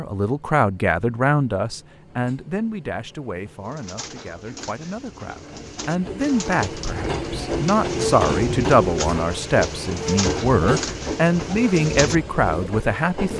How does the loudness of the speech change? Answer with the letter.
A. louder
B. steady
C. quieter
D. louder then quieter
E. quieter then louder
E.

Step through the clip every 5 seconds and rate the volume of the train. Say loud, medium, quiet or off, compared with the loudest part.
quiet, loud, loud.